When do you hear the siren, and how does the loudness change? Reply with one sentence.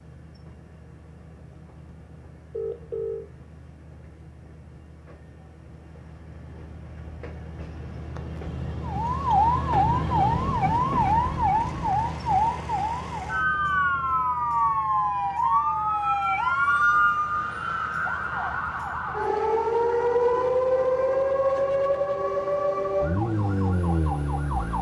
You can hear the siren from 8.8 to 24.7 s, at a steady volume.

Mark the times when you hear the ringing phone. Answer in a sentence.
You can hear the ringing phone from 2.5 to 3.3 s.